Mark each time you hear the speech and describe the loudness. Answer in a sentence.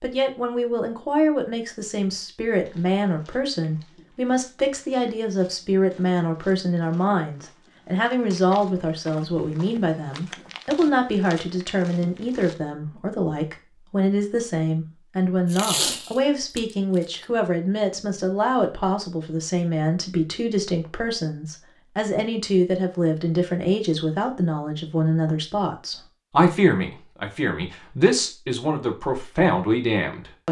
You can hear the speech from 0.0 to 30.4 s, at a steady volume.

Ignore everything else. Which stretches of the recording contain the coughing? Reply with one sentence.
You can't hear the coughing here.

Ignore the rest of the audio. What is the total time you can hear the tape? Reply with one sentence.
The tape can be heard for 2 seconds in total.